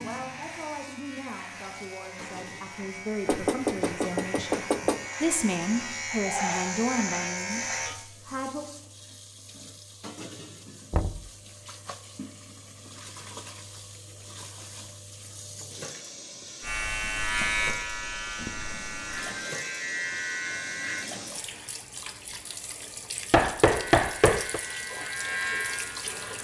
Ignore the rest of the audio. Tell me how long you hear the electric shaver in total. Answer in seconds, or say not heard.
15 s.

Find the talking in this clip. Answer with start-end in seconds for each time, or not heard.
0.0-8.7.